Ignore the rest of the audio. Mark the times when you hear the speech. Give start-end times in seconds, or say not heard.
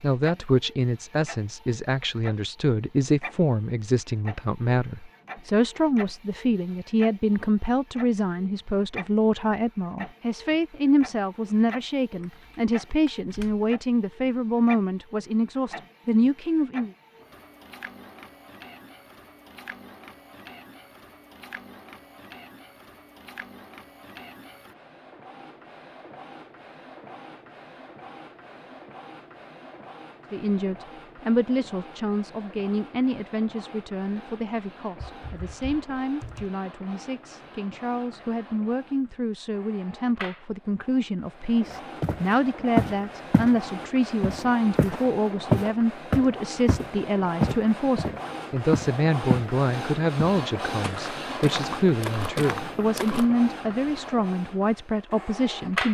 0.0-16.9, 30.3-55.9.